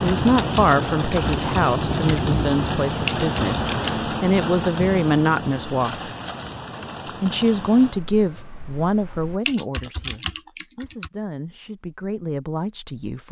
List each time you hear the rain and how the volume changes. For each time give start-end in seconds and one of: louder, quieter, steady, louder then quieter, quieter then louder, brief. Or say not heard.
0.0-9.4 quieter.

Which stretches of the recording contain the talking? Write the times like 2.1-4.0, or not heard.
0.0-6.1, 7.2-13.2.